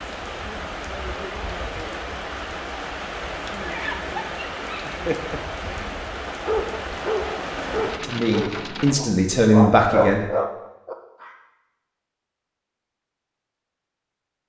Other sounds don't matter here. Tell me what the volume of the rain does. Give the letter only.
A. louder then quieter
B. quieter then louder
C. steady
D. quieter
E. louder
C.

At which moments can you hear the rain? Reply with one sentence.
The rain can be heard from 0.0 to 9.0 s.